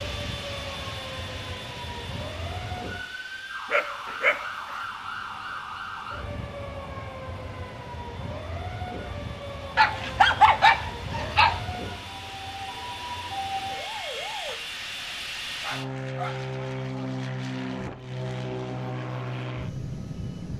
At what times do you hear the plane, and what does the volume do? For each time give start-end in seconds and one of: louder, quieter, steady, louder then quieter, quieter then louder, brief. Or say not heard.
0.0-20.5 quieter then louder.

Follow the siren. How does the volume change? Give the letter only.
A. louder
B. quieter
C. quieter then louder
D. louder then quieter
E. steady
E.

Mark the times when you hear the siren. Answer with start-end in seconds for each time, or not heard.
0.0-14.6.